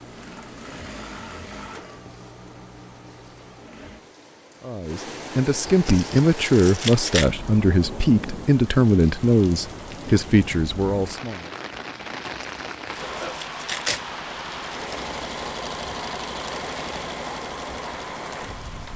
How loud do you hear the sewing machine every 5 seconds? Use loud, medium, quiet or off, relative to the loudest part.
medium, off, loud, loud.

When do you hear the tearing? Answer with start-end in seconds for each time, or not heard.
5.8-7.3, 12.4-14.0.